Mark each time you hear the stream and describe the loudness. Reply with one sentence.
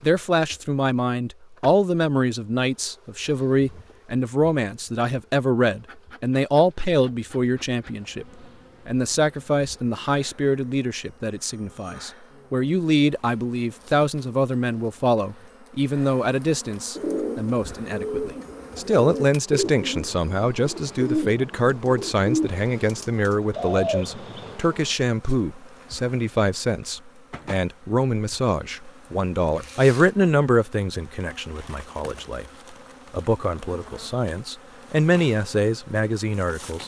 The stream can't be heard in this clip.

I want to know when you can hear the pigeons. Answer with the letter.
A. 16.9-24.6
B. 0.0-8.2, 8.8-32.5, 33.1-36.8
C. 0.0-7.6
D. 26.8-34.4
A.